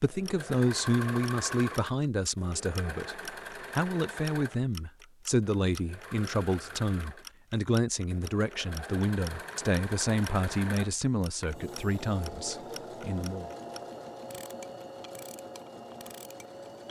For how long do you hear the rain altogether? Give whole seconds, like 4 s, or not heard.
not heard.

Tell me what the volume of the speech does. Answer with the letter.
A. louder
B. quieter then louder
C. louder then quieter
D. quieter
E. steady
E.